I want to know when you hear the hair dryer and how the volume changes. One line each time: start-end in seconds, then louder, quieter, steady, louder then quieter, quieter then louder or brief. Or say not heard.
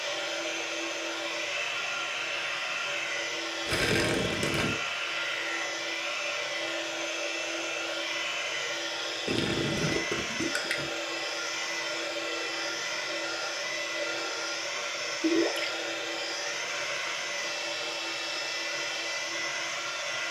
0.0-20.2 steady.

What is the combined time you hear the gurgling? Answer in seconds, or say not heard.
3 s.